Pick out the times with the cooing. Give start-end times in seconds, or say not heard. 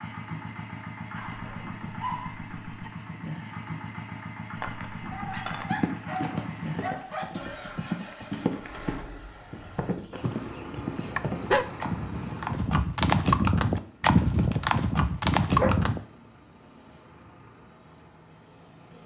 not heard.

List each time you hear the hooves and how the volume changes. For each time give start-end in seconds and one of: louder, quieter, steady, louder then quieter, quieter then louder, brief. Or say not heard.
4.5-16.0 louder.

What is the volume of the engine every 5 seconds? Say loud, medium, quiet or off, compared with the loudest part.
loud, loud, loud, quiet.